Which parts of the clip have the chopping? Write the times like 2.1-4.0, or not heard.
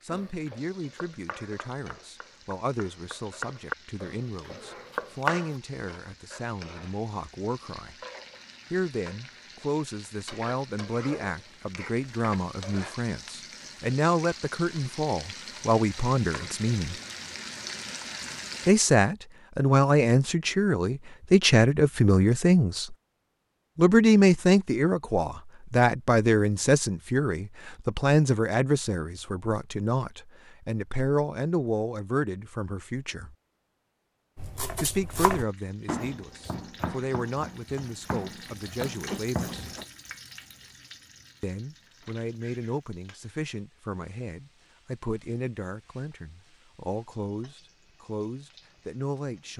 0.1-5.5, 34.4-39.8.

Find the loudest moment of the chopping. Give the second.
5 s.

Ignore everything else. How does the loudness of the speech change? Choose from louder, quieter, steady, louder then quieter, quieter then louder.
louder then quieter.